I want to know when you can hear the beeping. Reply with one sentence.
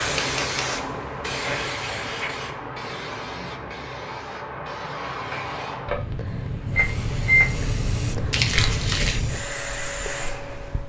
You can hear the beeping from 6.8 to 7.7 s.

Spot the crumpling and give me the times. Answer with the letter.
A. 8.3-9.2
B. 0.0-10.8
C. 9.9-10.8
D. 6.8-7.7
A.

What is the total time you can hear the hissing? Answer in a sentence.
You can hear the hissing for 11 seconds altogether.